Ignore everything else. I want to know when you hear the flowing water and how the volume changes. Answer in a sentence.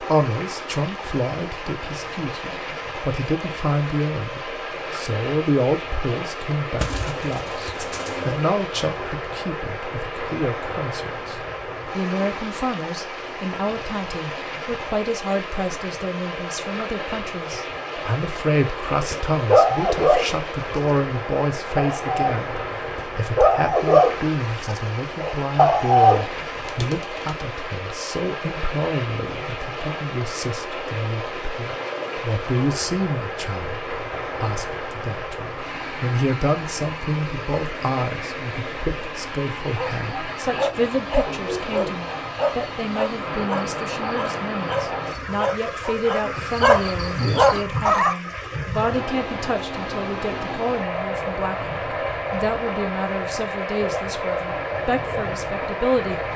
You can hear the flowing water from 0.0 to 56.3 s, at a steady volume.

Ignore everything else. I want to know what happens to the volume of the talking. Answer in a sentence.
The volume of the talking stays about the same.